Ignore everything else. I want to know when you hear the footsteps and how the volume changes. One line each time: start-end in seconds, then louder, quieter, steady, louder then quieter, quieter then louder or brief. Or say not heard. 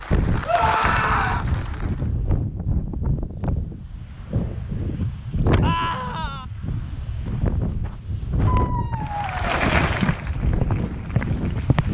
6.8-11.9 louder.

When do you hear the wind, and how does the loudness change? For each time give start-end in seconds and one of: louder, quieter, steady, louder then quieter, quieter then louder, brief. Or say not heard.
0.0-11.9 steady.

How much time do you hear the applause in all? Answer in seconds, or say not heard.
5 s.